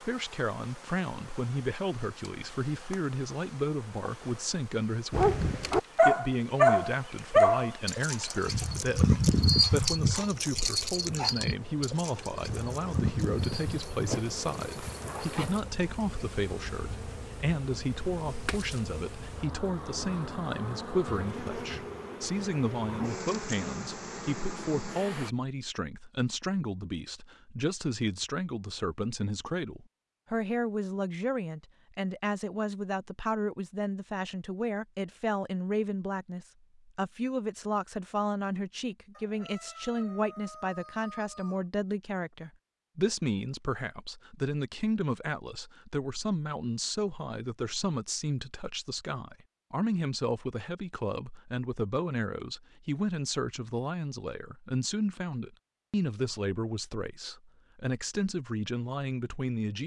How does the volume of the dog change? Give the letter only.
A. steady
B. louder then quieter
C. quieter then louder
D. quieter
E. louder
D.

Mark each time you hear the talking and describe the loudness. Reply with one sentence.
You can hear the talking from 0.0 to 59.8 s, at a steady volume.